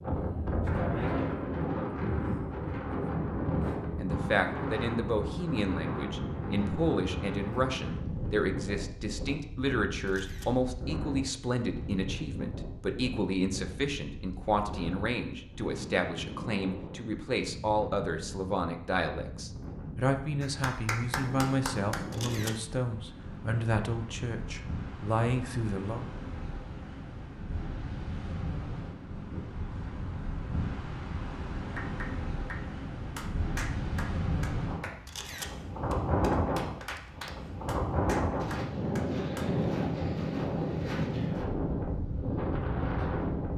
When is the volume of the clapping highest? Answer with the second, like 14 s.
21 s.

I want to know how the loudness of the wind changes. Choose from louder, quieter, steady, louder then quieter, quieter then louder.
quieter then louder.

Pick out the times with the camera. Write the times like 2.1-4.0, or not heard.
10.1-10.6, 22.1-22.6, 35.0-35.5.